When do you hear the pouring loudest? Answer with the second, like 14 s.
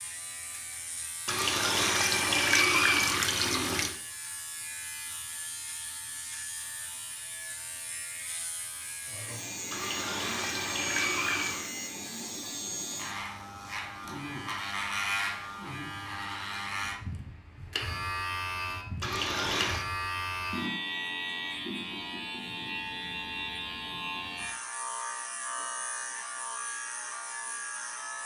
3 s.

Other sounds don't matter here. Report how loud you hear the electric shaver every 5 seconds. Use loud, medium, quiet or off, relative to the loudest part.
medium, medium, loud, loud, loud, loud.